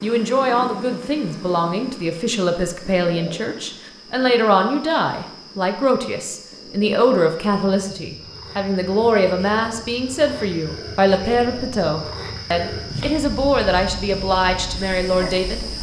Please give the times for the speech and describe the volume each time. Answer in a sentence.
The speech can be heard from 0.0 to 15.7 s, at a steady volume.